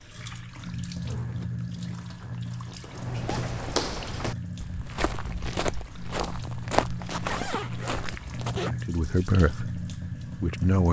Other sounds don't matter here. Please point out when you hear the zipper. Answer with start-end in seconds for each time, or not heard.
1.1-3.5, 6.8-8.8.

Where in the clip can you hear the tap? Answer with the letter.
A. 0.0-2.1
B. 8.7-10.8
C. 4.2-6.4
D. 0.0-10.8
D.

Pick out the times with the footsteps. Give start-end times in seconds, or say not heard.
2.8-8.6.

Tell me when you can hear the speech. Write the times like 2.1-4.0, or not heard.
8.7-10.8.